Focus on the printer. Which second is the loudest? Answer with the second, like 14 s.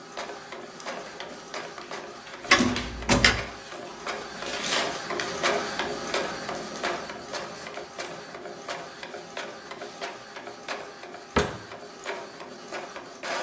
5 s.